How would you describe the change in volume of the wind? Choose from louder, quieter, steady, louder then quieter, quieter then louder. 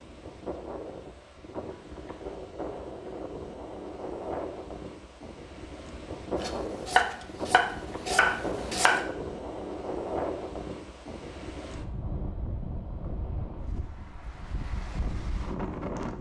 steady.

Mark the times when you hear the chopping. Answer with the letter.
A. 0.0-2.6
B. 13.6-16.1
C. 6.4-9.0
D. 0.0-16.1
C.